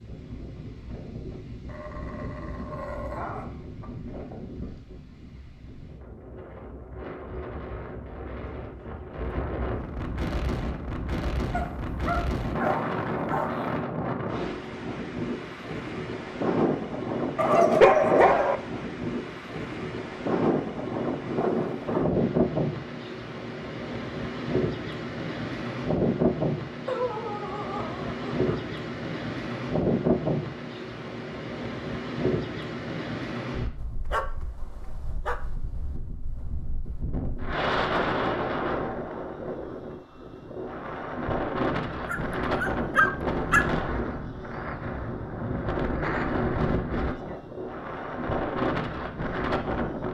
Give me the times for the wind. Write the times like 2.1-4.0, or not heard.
0.0-50.0.